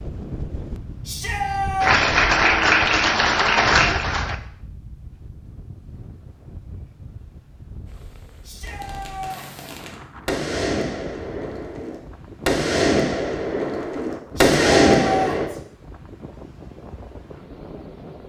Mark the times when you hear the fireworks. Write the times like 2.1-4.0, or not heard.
8.7-15.5.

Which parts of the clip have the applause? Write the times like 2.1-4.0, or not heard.
1.8-4.3.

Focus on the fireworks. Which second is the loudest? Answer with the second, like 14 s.
15 s.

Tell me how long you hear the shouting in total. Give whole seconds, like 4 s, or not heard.
3 s.